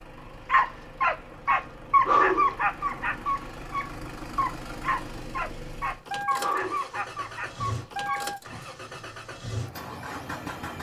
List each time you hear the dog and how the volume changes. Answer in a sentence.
The dog can be heard from 0.5 to 9.1 s, getting quieter.